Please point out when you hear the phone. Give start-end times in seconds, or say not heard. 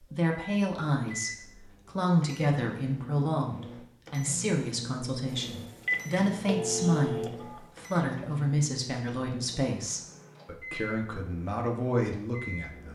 5.4-7.7.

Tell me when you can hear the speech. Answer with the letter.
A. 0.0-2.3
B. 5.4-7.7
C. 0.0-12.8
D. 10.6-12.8
C.